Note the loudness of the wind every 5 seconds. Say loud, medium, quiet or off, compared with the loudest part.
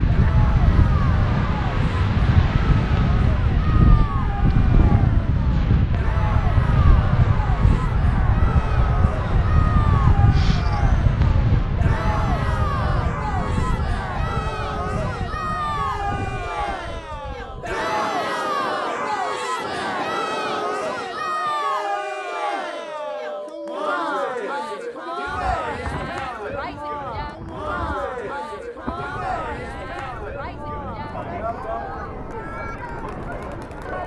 loud, loud, loud, quiet, quiet, quiet, quiet.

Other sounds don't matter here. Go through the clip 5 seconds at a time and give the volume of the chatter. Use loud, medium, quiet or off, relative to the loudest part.
medium, medium, loud, loud, loud, loud, medium.